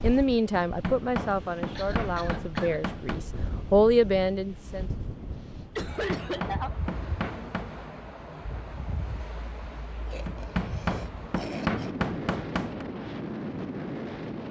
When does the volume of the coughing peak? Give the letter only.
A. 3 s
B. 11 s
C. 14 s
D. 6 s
D.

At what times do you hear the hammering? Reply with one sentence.
The hammering can be heard from 0.7 to 3.2 s, from 6.0 to 7.8 s and from 10.2 to 12.8 s.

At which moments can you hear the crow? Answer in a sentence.
The crow can't be heard in this clip.